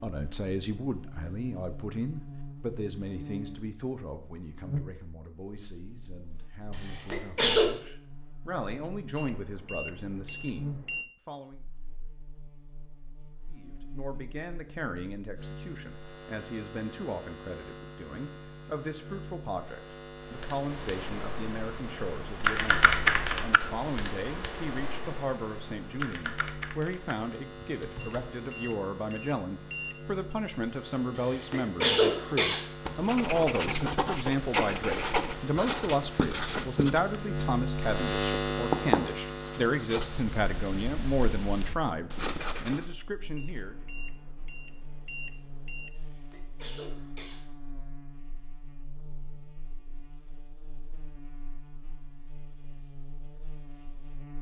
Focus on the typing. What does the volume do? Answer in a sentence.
The loudness of the typing goes up, then down.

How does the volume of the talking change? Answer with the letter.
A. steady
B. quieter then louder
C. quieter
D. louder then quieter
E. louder
E.